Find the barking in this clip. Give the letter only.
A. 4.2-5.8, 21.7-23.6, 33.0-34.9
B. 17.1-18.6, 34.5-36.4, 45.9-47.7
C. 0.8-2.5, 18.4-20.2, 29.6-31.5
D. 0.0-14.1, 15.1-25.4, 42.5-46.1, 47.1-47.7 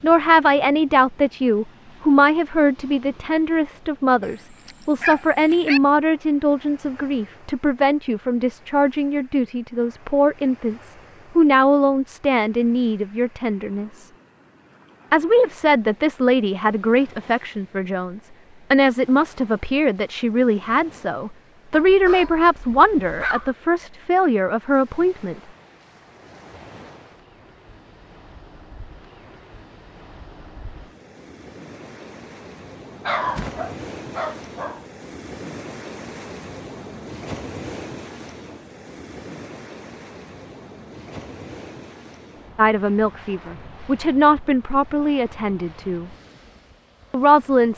A.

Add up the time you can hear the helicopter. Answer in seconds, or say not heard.
not heard.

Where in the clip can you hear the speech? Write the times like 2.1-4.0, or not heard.
0.0-14.1, 15.1-25.4, 42.5-46.1, 47.1-47.7.